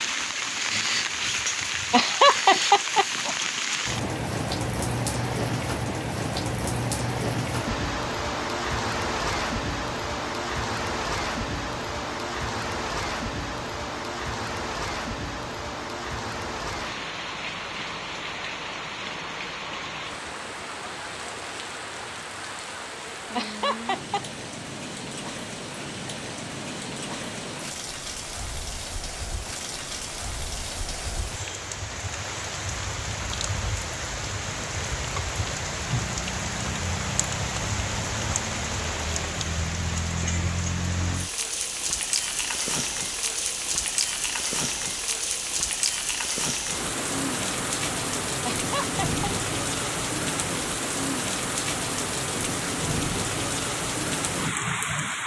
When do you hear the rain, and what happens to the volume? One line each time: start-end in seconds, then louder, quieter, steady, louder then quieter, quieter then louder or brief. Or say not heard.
0.0-55.2 quieter then louder.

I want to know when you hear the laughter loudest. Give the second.
2 s.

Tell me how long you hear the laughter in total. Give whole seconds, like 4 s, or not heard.
3 s.